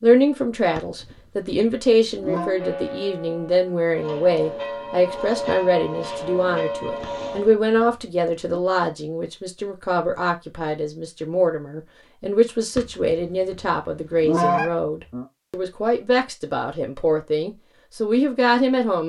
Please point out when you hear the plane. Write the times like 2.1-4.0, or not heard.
not heard.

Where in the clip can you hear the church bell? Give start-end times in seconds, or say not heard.
2.2-7.5.